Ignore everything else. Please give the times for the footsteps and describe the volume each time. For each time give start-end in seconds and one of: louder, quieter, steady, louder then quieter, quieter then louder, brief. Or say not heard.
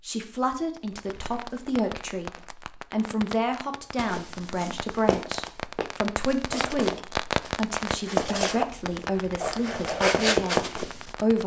4.0-11.1 quieter then louder.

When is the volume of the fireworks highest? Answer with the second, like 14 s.
7 s.